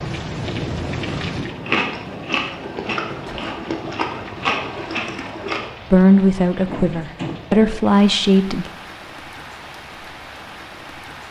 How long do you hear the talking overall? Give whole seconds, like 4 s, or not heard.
3 s.